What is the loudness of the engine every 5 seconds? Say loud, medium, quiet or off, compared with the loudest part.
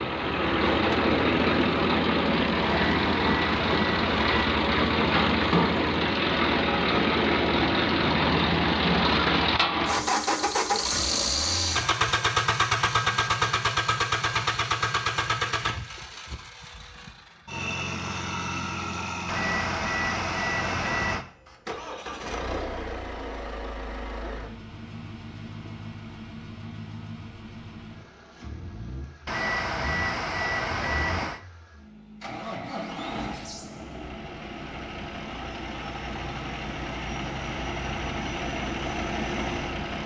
loud, loud, loud, medium, quiet, quiet, quiet, medium.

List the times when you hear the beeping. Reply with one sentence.
You can hear the beeping from 2.6 to 4.5 s, from 19.2 to 21.2 s and from 29.2 to 31.4 s.